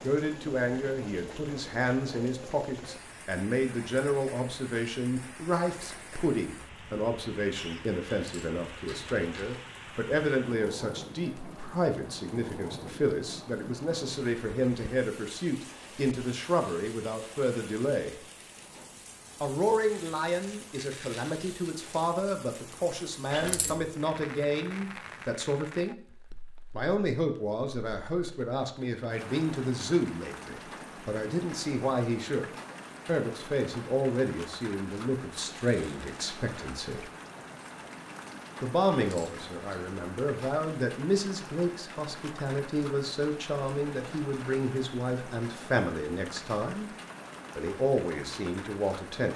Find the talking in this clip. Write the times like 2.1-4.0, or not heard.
0.0-18.1, 19.4-25.9, 26.7-37.0, 38.6-46.9, 47.5-49.3.